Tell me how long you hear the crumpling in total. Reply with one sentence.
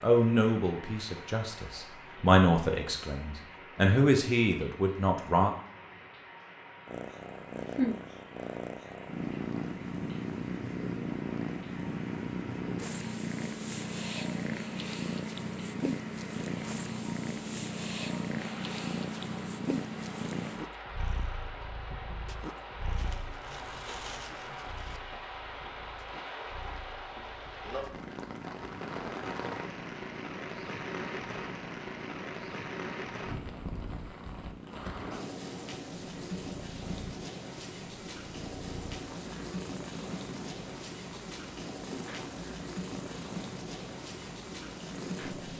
The crumpling can be heard for 2 seconds in total.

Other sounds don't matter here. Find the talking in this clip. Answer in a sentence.
The talking can be heard from 0.0 to 5.5 s.